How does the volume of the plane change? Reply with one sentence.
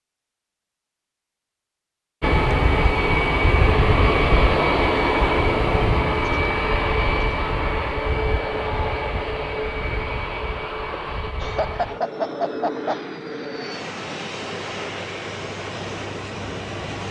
The loudness of the plane goes down.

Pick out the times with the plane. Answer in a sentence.
The plane can be heard from 2.2 to 17.0 s.